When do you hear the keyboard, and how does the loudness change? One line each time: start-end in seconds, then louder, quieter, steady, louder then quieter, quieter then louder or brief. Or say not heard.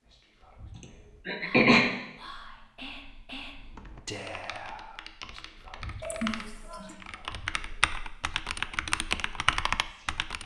3.6-10.4 louder.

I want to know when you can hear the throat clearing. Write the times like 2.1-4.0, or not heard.
0.8-1.9, 6.0-7.0.